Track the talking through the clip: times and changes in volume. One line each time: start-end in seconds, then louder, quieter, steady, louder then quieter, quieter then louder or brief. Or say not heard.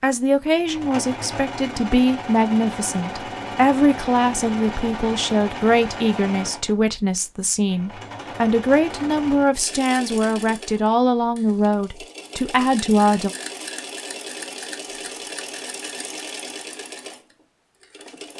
0.0-13.3 steady.